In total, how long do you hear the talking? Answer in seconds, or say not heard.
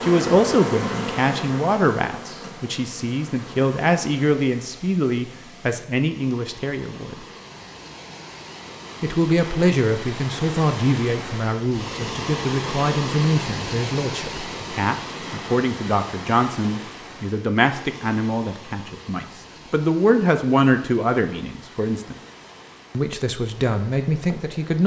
22 s.